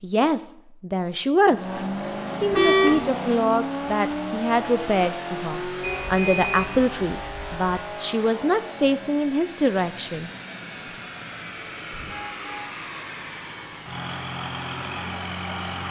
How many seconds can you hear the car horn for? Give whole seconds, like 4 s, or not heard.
3 s.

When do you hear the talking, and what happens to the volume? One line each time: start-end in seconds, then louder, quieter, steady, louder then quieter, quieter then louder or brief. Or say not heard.
0.0-10.3 steady.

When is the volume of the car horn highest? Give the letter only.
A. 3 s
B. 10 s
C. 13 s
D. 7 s
A.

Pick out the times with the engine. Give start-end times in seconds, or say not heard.
1.4-15.8.